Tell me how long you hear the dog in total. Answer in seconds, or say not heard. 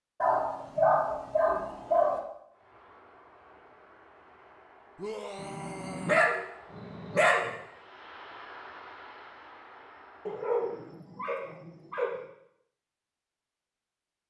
6 s.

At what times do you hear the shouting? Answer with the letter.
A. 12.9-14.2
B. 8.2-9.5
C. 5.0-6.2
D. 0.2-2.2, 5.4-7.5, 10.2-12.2
C.